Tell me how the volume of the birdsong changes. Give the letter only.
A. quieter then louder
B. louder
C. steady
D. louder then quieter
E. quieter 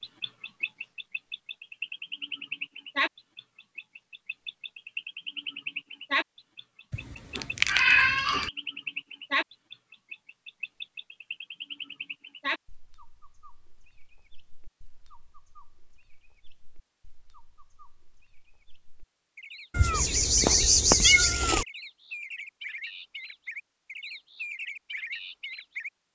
A.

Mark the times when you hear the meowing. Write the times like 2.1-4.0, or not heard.
6.9-8.5, 19.7-21.6.